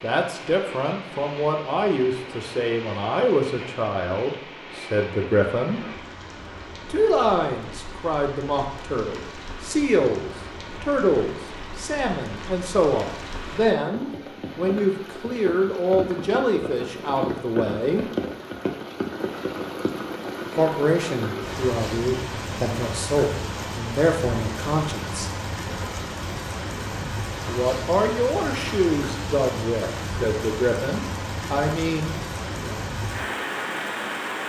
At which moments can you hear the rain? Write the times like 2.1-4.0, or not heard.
0.0-34.4.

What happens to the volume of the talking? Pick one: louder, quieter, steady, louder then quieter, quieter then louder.
steady.